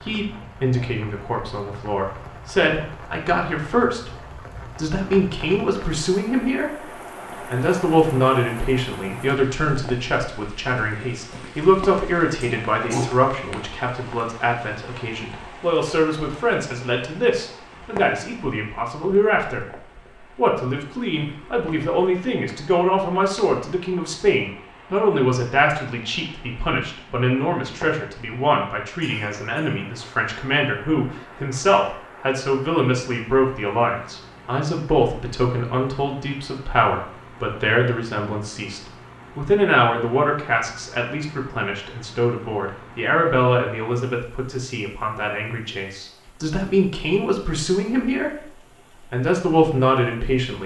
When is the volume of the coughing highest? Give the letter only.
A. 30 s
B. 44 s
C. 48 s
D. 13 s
D.